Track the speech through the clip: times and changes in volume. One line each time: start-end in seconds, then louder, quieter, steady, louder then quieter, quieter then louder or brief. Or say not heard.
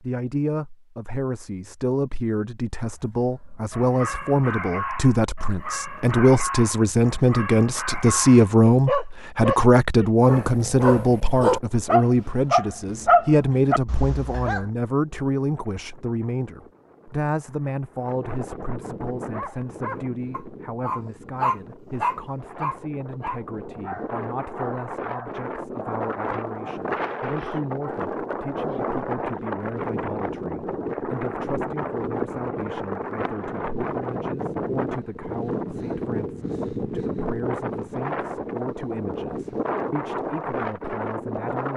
0.0-41.7 quieter.